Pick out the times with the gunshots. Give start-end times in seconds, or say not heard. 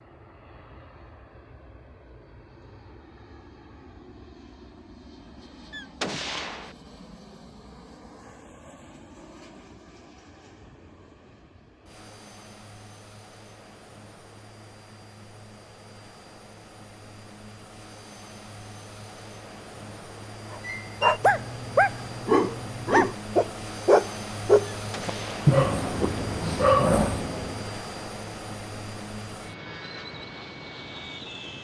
5.7-6.8, 24.8-25.5.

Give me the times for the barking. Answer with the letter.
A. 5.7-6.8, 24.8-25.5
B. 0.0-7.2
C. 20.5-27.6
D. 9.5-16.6
C.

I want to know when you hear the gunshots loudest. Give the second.
6 s.